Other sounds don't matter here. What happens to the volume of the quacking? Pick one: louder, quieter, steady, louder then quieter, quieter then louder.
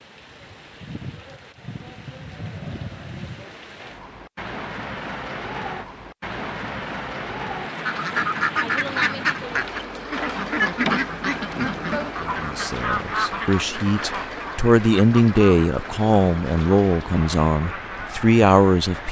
quieter.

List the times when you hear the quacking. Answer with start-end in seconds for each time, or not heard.
7.7-18.1.